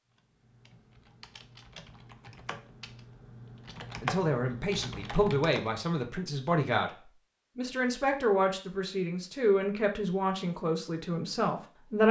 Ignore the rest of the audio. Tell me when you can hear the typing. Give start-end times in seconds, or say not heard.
0.1-5.7.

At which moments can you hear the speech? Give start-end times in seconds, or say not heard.
4.0-12.0.